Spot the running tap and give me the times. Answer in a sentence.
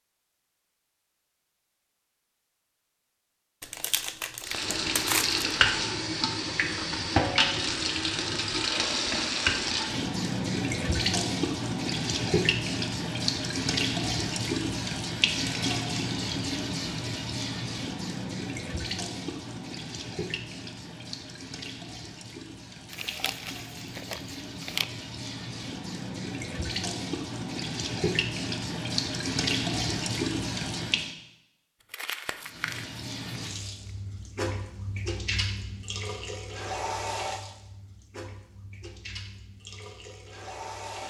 You can hear the running tap from 4.4 to 31.1 s and from 32.4 to 41.0 s.